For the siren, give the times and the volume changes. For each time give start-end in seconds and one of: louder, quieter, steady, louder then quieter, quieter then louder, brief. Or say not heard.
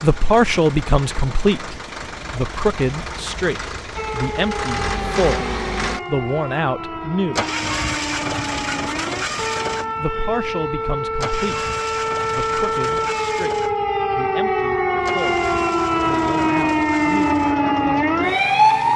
4.0-18.9 louder.